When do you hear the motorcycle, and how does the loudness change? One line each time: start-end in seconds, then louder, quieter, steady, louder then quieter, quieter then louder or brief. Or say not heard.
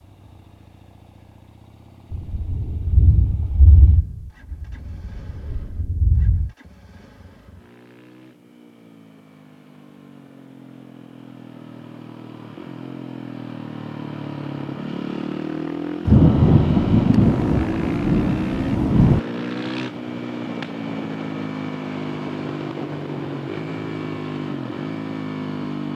0.0-25.9 louder.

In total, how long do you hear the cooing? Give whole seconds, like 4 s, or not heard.
not heard.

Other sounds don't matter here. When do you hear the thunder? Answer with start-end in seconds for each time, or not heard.
2.1-6.5, 16.1-19.2.